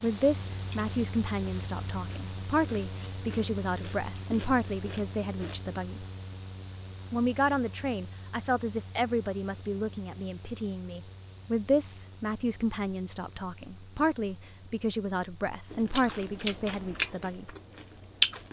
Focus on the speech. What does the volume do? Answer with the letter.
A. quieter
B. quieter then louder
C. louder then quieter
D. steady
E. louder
D.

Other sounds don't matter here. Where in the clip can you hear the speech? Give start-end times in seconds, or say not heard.
0.0-6.0, 7.1-17.5.